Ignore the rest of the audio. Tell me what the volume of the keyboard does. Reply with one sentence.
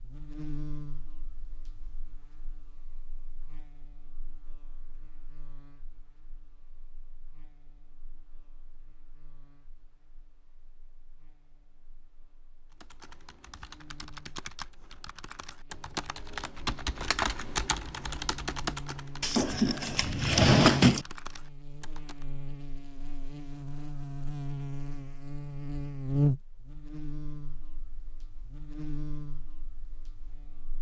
The loudness of the keyboard goes up, then down.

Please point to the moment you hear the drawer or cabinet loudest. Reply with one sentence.
The volume of the drawer or cabinet peaks at 21 seconds.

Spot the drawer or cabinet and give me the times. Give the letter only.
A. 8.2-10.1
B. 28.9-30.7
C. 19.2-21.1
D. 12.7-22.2
C.